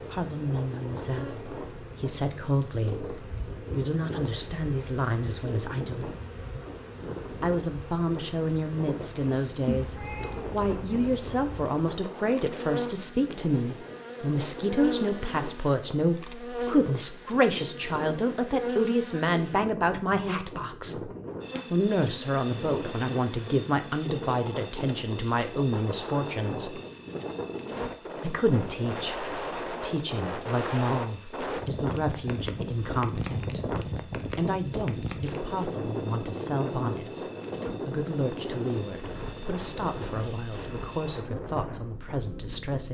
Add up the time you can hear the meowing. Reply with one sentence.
You can hear the meowing for 2 seconds altogether.